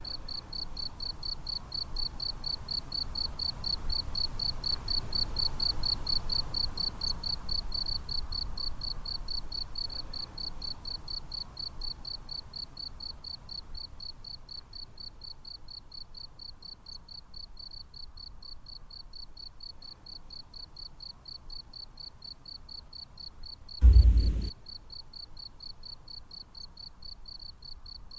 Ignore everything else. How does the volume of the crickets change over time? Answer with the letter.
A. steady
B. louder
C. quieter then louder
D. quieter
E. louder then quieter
D.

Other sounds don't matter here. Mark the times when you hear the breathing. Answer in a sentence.
You can't hear the breathing here.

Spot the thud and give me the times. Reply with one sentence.
The thud can be heard from 23.8 to 24.5 s.